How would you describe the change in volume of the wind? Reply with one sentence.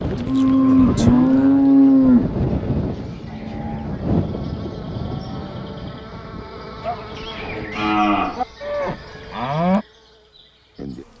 The loudness of the wind goes down.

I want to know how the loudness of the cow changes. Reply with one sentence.
The loudness of the cow goes down, then up.